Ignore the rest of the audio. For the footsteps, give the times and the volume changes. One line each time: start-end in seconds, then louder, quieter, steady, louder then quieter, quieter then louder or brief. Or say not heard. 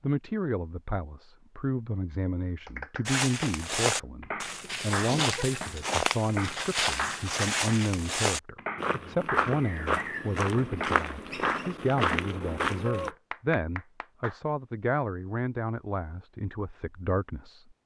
3.0-13.1 steady.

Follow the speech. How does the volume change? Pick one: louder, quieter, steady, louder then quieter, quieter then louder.
steady.